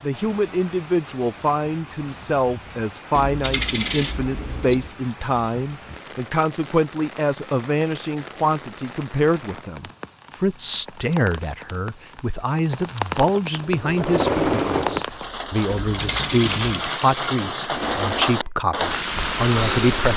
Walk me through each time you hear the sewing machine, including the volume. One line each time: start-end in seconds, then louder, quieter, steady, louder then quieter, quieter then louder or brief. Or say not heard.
13.6-18.4 quieter.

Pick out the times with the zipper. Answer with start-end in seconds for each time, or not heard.
not heard.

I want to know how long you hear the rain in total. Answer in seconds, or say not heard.
20 s.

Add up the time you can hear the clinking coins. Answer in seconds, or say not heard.
3 s.